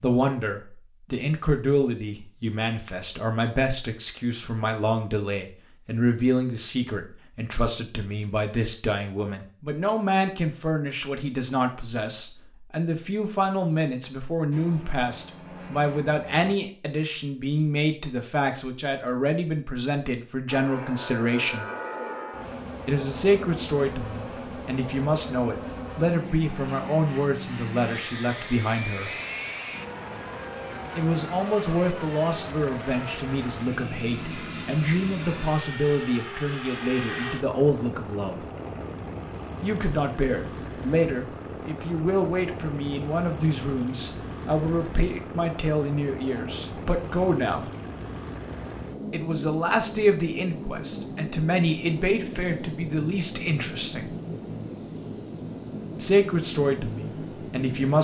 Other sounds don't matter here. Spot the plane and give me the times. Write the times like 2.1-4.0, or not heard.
14.5-16.6, 20.4-57.9.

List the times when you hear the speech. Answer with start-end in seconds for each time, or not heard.
0.0-21.6, 22.9-29.1, 30.9-38.4, 39.6-47.6, 49.1-54.1, 56.0-57.9.